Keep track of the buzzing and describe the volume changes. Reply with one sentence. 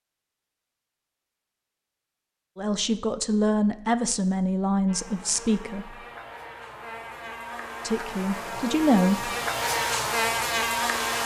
The volume of the buzzing goes up.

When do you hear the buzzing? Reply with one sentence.
The buzzing can be heard from 4.8 to 11.2 s.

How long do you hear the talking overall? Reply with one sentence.
The talking can be heard for 5 seconds in total.